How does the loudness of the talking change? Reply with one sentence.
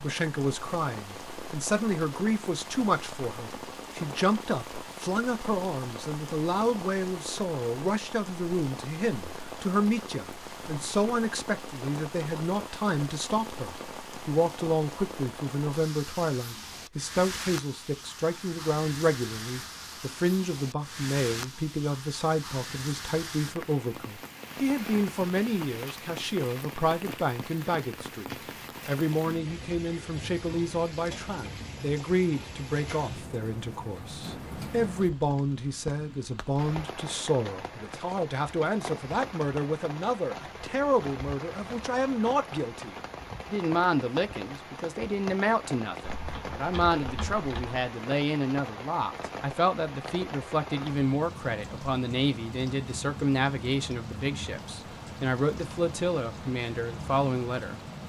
The volume of the talking stays about the same.